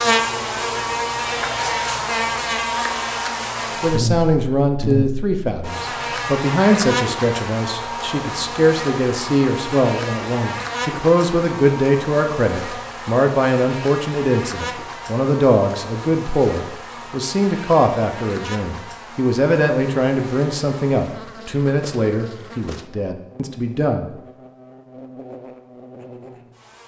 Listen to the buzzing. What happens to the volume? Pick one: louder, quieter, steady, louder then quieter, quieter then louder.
quieter.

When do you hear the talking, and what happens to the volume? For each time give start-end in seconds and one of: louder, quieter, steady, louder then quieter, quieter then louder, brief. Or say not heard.
3.8-24.1 steady.